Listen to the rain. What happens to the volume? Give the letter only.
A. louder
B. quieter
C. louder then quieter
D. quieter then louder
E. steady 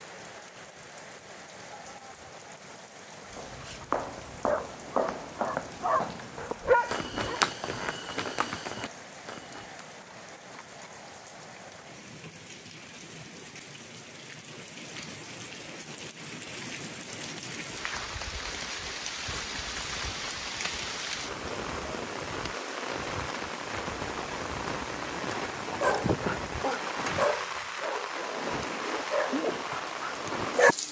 A.